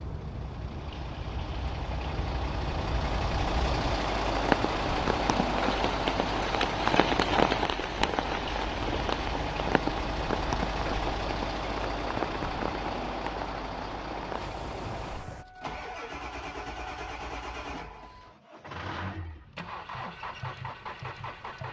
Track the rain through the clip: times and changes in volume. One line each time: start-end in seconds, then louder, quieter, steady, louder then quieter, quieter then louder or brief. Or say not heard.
0.0-15.4 louder then quieter.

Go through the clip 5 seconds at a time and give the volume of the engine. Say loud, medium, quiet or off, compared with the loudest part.
loud, loud, loud, medium, medium.